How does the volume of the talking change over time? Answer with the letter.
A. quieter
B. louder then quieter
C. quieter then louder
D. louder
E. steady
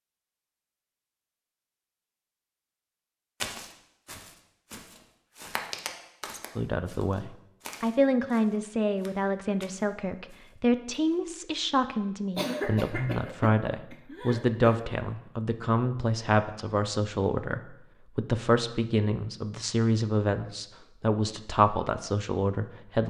E.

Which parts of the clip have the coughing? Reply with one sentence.
You can hear the coughing from 12.3 to 14.8 s.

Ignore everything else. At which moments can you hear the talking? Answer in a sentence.
The talking can be heard from 6.5 to 23.0 s.